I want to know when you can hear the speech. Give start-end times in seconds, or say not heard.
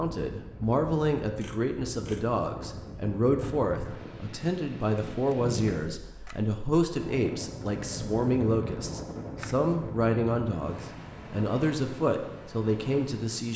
0.0-13.5.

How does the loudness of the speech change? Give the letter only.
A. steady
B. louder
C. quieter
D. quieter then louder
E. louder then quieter
A.